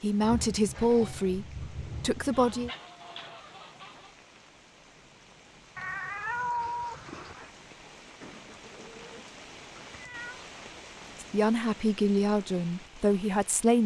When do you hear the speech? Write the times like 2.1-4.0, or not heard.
0.0-2.7, 11.2-13.8.